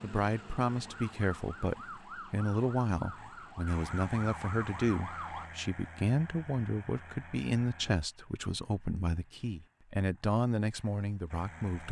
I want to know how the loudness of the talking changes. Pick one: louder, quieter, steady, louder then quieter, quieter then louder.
steady.